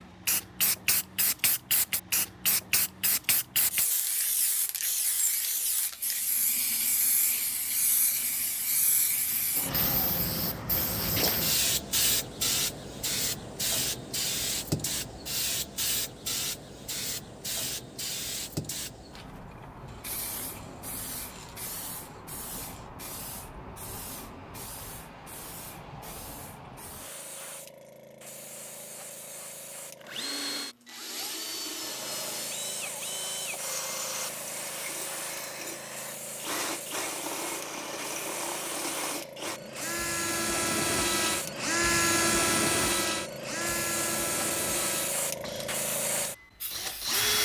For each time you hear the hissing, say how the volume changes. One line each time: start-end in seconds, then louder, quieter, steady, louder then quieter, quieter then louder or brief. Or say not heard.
0.0-30.4 quieter
31.8-47.1 louder.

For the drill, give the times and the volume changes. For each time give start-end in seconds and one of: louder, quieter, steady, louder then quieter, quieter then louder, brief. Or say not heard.
30.0-47.3 louder then quieter.